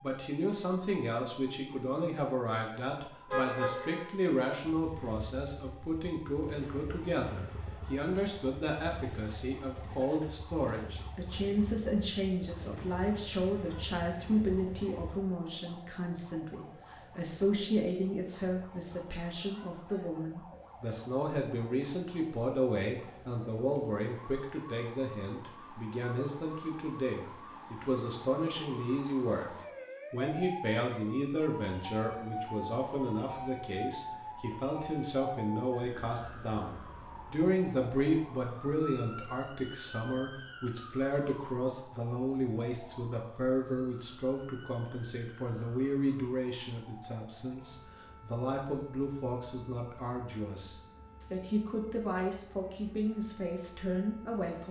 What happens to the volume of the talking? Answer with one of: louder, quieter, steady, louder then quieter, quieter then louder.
steady.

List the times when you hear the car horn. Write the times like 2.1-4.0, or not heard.
3.3-4.1.